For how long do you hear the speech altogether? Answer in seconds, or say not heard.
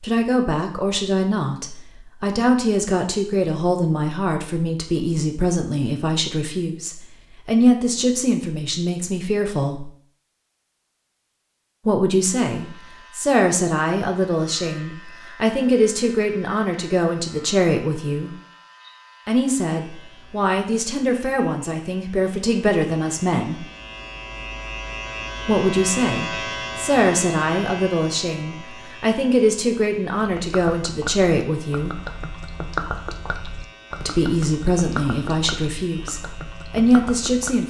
31 s.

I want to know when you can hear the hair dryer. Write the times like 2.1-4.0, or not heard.
not heard.